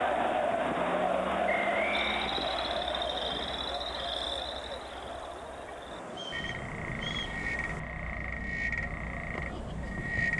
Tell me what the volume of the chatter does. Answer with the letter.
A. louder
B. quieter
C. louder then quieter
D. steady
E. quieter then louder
B.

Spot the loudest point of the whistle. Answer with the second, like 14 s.
2 s.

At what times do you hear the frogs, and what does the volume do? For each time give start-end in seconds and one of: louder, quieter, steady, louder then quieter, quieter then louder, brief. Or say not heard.
1.9-10.3 quieter then louder.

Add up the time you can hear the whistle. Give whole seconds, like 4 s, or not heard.
2 s.